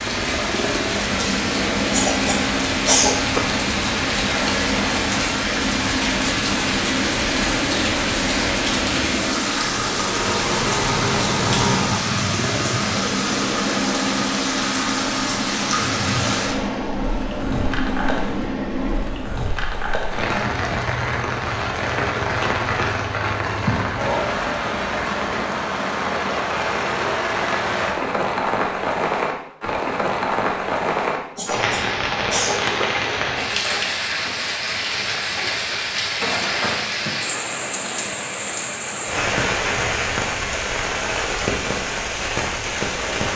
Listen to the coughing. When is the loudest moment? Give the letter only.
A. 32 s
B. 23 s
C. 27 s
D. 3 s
D.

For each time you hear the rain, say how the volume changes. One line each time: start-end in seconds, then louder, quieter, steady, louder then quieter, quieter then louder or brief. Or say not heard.
0.0-43.3 steady.